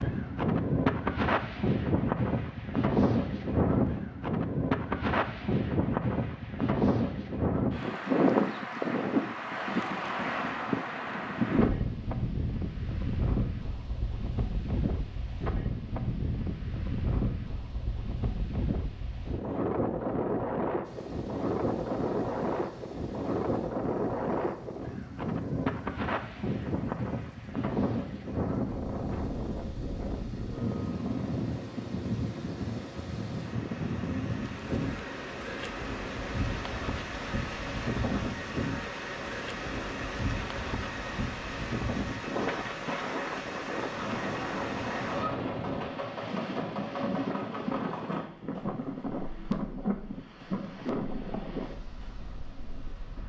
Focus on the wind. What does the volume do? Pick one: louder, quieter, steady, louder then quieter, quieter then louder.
quieter.